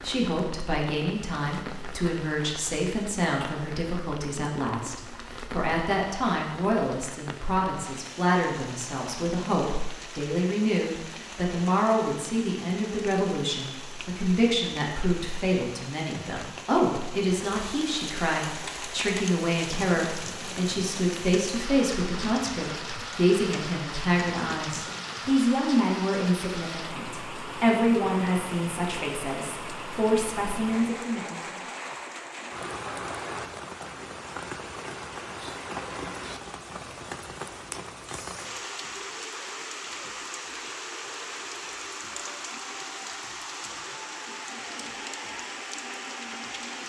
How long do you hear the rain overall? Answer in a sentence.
You can hear the rain for 47 seconds altogether.